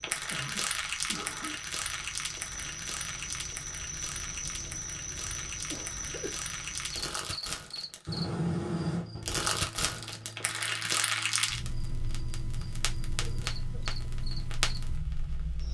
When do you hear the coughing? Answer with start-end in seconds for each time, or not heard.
0.3-1.6, 5.5-6.5, 13.2-13.6.